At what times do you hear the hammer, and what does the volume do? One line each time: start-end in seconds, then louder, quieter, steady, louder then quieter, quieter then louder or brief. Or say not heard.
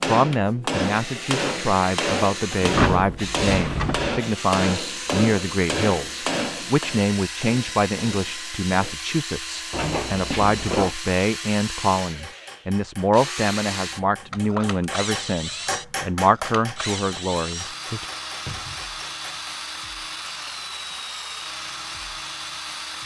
0.0-9.0 quieter
12.1-19.5 louder then quieter.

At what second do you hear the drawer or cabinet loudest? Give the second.
3 s.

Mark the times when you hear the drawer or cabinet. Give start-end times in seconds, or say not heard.
2.6-4.2, 9.7-10.9, 18.4-18.9.